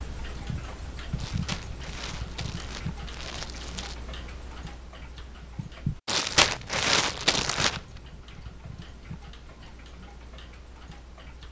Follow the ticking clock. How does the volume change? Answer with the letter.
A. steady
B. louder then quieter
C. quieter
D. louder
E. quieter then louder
C.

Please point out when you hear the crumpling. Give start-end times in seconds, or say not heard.
1.1-4.0, 6.0-7.8.